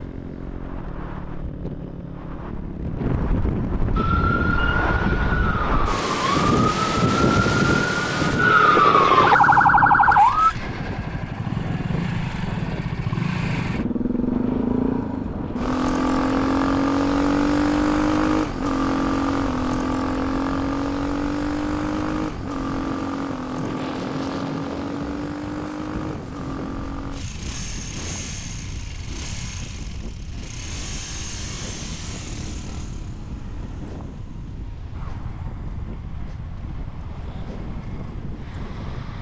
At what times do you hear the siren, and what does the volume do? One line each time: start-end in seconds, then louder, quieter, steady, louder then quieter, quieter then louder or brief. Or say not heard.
4.0-10.5 louder.